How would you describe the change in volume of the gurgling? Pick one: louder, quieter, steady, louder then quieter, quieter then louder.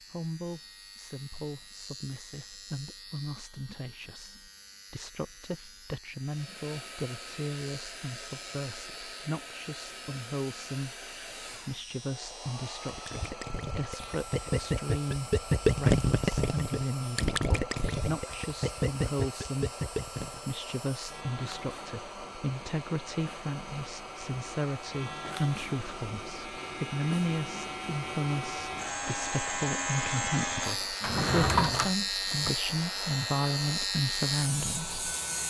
louder then quieter.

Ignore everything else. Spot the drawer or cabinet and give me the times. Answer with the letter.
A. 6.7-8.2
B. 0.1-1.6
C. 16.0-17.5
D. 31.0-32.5
D.